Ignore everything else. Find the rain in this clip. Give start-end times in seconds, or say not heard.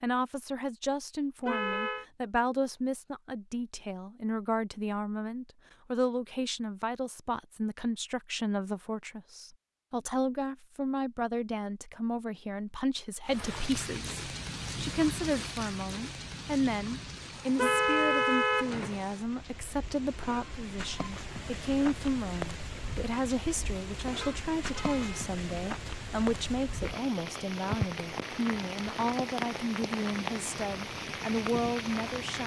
13.2-32.4.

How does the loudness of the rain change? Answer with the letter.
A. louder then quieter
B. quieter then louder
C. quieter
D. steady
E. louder
B.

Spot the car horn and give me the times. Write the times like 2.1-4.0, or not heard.
1.4-2.0, 17.6-19.0, 24.1-25.4.